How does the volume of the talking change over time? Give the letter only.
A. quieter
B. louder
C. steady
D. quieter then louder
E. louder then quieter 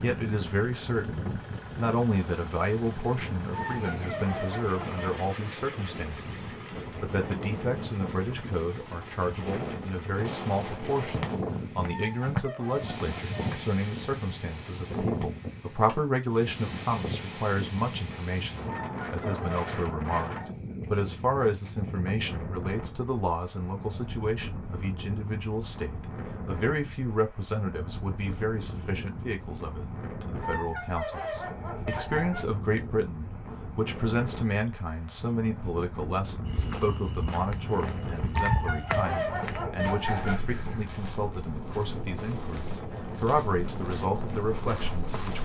C.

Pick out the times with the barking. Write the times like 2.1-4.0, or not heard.
3.5-5.2, 11.9-13.6, 18.6-20.6, 30.4-32.5, 38.3-40.4.